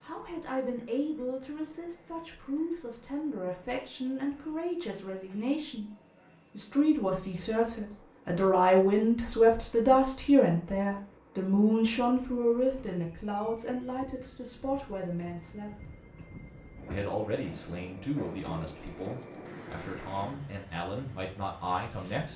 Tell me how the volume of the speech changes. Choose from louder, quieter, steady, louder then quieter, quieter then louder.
louder then quieter.